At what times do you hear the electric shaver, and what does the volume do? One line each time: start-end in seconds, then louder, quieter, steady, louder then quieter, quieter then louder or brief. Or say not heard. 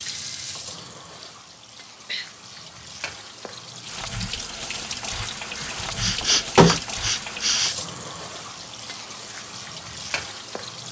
not heard.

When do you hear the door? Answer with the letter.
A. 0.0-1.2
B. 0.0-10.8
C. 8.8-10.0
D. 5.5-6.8
D.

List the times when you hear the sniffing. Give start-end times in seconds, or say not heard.
0.7-2.7, 5.6-7.8.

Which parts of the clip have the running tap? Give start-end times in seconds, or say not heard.
0.0-10.8.